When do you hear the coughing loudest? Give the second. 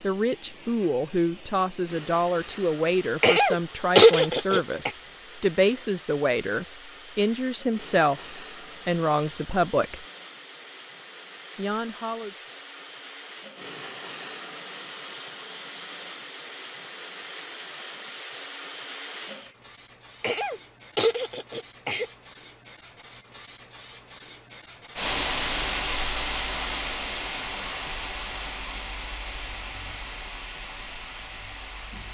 4 s.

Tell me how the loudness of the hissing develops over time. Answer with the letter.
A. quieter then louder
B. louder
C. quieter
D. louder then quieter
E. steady
B.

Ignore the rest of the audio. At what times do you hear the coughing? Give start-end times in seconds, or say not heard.
3.2-4.9, 20.2-22.1.